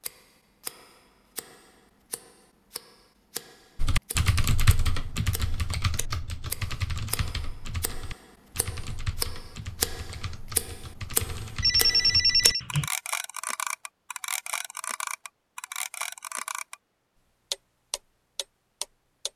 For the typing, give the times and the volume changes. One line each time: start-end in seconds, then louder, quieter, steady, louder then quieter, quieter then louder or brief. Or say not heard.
3.8-12.9 quieter.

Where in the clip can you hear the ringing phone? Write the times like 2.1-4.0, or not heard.
11.6-12.6.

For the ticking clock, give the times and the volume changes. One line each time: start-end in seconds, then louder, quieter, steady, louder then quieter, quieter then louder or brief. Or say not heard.
0.0-16.8 louder
17.5-19.3 brief.